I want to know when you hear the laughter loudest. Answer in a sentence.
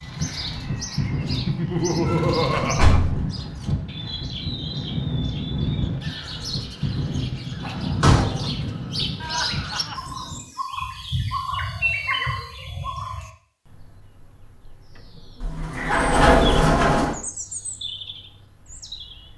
The loudest moment of the laughter is at 2 seconds.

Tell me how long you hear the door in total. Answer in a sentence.
The door can be heard for 4 seconds in total.